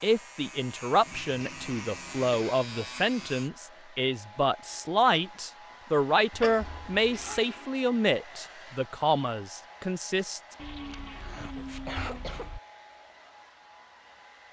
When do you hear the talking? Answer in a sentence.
The talking can be heard from 0.0 to 10.4 s.